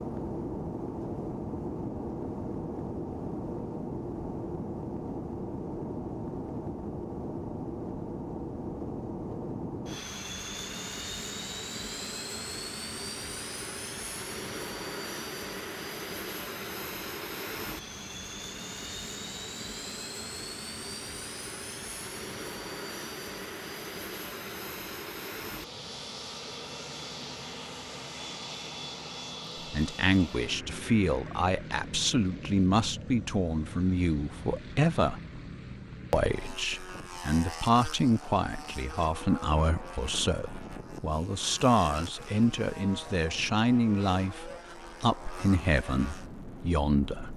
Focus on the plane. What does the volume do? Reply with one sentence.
The loudness of the plane goes down.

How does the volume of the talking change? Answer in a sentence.
The volume of the talking stays about the same.